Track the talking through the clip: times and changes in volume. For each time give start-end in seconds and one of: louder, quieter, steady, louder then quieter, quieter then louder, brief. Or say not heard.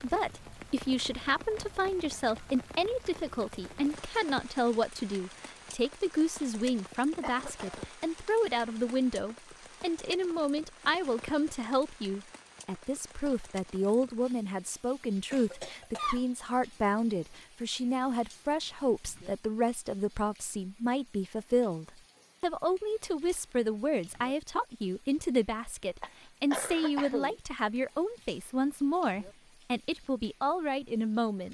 0.0-31.5 steady.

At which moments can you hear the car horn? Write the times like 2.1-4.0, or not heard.
not heard.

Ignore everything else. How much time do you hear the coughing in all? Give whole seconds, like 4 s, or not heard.
3 s.